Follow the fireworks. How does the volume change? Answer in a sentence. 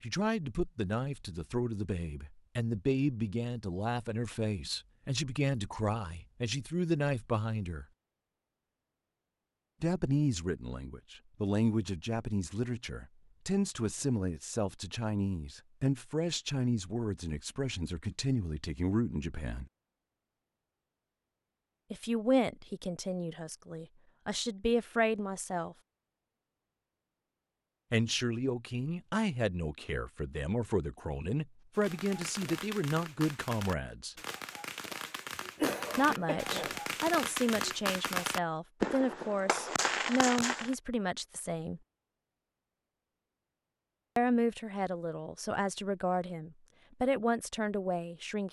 The volume of the fireworks goes up.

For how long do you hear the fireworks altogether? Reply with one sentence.
The fireworks can be heard for 9 seconds in total.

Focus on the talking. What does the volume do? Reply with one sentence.
The volume of the talking stays about the same.